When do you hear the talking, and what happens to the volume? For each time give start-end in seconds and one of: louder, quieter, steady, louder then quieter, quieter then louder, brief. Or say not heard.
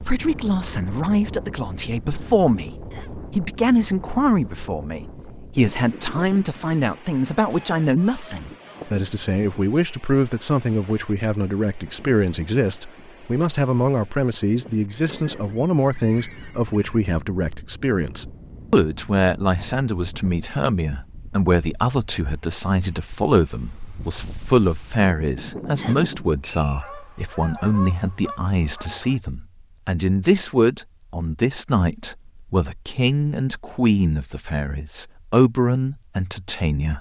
0.0-36.9 steady.